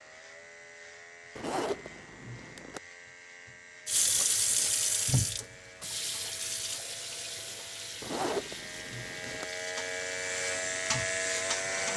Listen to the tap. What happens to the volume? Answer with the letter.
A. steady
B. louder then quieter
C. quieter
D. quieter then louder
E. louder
C.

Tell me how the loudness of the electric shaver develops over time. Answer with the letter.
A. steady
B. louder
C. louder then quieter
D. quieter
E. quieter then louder
B.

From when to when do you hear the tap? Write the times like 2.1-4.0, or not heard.
3.9-11.9.